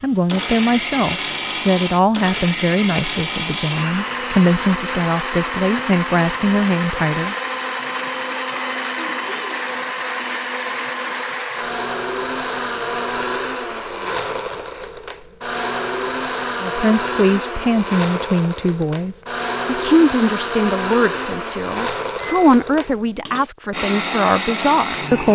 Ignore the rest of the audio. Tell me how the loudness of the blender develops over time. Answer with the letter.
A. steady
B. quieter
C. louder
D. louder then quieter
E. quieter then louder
A.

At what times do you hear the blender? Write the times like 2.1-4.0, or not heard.
0.0-25.3.